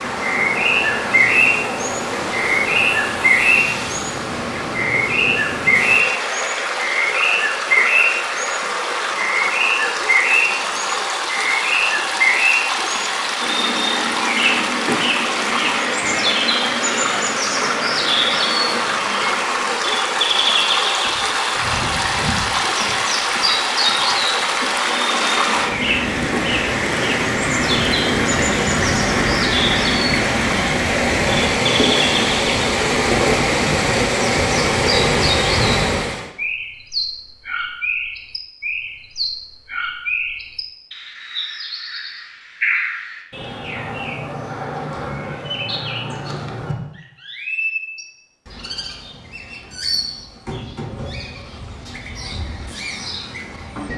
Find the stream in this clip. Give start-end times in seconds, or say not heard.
0.0-36.3.